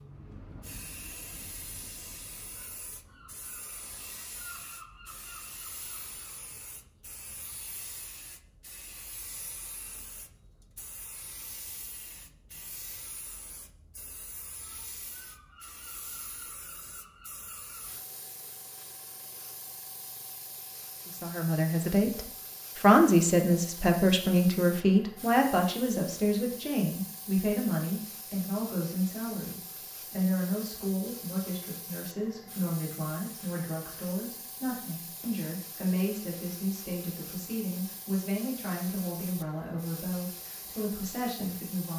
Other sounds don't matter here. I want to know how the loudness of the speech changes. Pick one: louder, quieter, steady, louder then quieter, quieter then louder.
quieter.